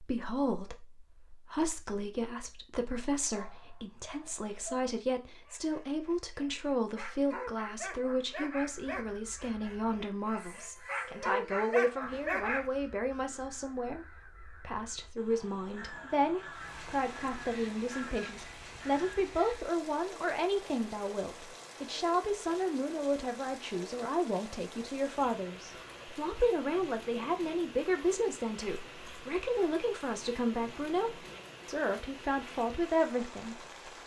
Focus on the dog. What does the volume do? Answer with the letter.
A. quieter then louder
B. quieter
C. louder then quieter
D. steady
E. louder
E.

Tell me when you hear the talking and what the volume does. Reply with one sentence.
The talking can be heard from 0.0 to 34.0 s, at a steady volume.